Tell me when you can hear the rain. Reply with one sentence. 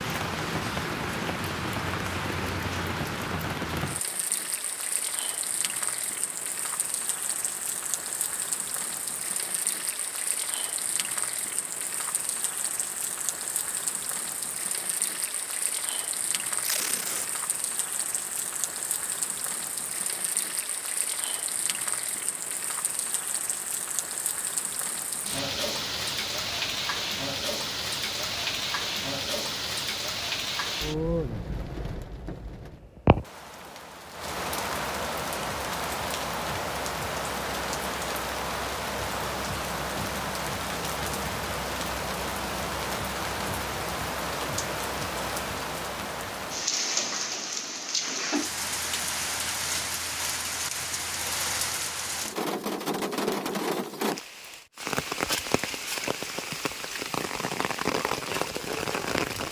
You can hear the rain from 0.0 to 59.4 s.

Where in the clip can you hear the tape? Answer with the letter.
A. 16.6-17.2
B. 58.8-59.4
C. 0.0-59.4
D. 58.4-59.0
A.